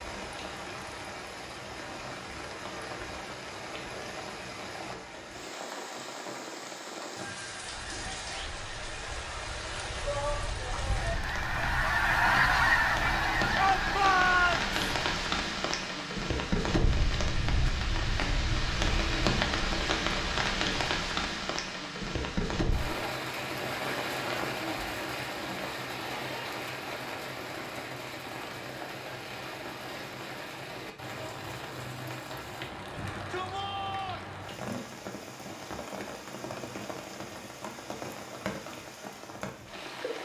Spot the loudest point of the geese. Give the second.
13 s.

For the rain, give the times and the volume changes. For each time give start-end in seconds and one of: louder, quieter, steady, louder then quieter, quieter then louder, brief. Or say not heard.
0.0-40.2 louder then quieter.